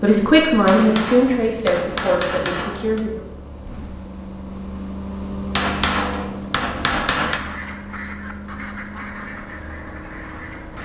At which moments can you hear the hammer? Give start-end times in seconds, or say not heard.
0.7-3.0, 5.5-7.4.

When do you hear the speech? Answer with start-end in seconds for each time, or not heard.
0.0-3.2.